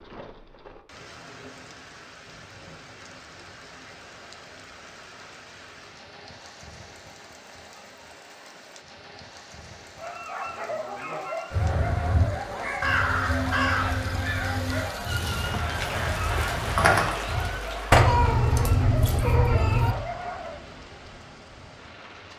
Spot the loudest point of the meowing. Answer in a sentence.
The volume of the meowing peaks at 18 seconds.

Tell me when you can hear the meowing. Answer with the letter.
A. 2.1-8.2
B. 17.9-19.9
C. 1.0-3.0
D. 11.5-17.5
B.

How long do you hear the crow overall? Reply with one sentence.
You can hear the crow for 6 seconds altogether.